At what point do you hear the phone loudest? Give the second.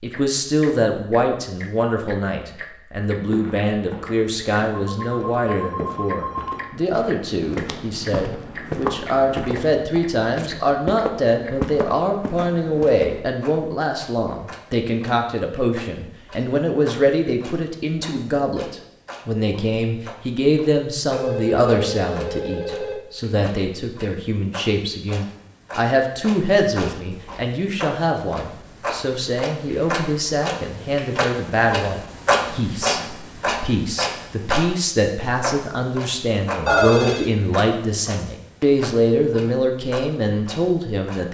37 s.